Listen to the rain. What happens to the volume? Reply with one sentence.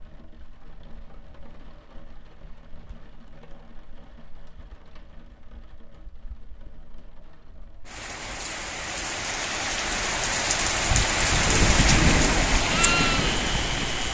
The loudness of the rain goes up.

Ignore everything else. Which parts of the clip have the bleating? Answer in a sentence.
The bleating can be heard from 12.6 to 14.0 s.